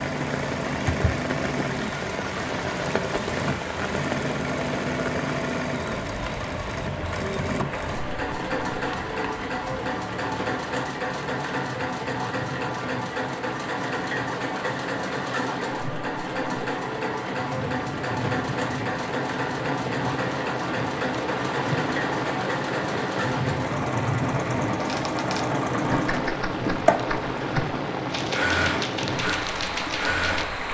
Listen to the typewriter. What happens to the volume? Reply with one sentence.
The volume of the typewriter stays about the same.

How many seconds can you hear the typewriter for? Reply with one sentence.
The typewriter can be heard for 6 seconds in total.